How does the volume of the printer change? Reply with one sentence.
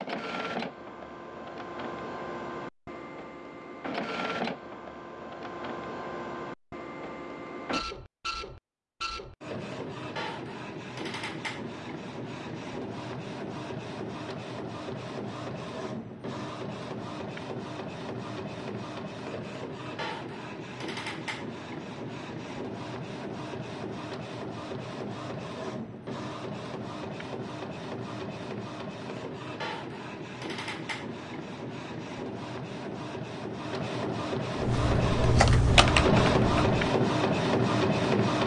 The volume of the printer goes up.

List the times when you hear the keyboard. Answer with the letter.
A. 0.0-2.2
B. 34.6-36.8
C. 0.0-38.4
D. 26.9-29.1
B.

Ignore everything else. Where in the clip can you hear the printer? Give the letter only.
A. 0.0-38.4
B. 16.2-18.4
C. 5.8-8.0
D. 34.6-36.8
A.